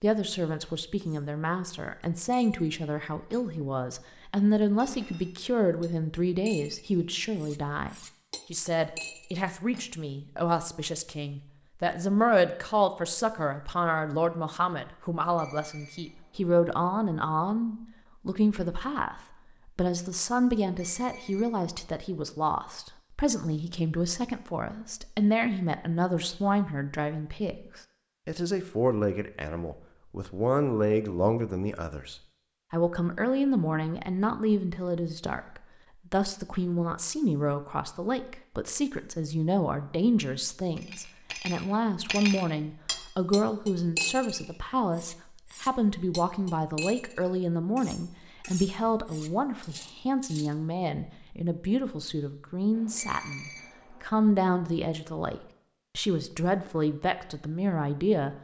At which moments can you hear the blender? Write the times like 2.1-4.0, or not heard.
not heard.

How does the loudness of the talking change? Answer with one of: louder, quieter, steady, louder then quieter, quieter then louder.
steady.